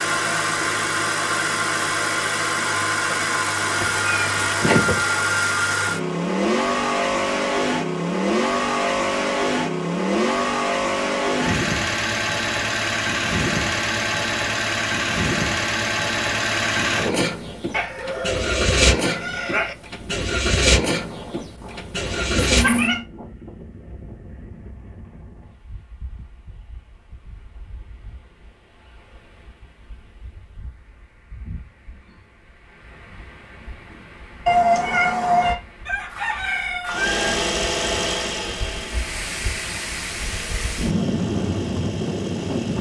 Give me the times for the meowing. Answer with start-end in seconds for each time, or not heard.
3.8-5.0, 22.4-23.0, 34.5-35.5.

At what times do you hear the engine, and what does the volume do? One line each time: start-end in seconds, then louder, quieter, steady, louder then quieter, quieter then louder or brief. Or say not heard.
0.0-23.1 steady
36.9-42.7 quieter.